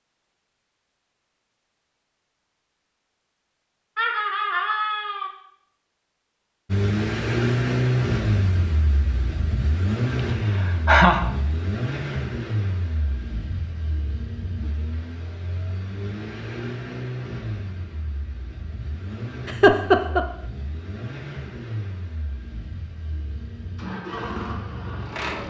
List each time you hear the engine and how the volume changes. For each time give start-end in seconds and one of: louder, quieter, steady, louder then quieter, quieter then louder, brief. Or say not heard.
6.7-25.4 quieter.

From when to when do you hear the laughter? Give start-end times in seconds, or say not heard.
4.0-5.3, 10.2-11.2, 19.4-20.2.